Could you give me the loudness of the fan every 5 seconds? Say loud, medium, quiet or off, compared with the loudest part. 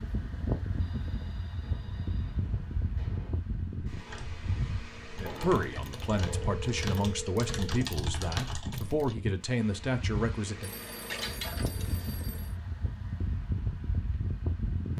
loud, medium, loud.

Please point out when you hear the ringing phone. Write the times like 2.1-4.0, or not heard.
0.7-3.4, 5.0-7.8, 10.6-12.6.